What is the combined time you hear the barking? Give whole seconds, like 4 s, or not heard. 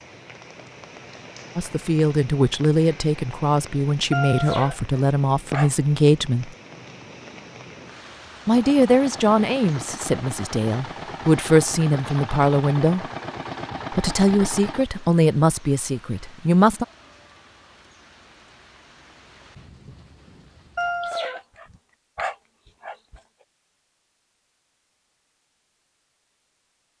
4 s.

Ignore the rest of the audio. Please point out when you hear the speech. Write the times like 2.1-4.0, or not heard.
1.6-6.5, 8.4-13.1, 13.9-16.9.